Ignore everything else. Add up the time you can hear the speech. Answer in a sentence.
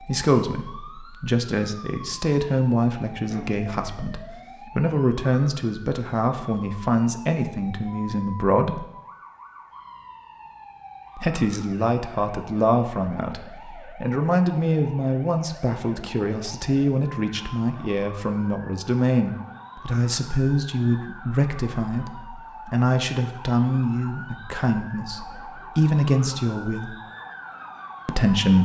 The speech can be heard for 25 seconds in total.